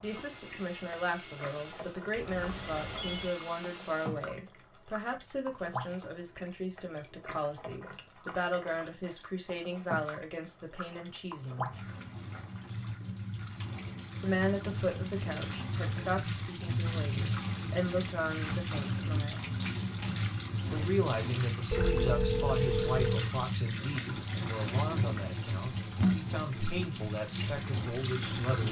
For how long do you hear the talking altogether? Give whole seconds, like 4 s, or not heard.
25 s.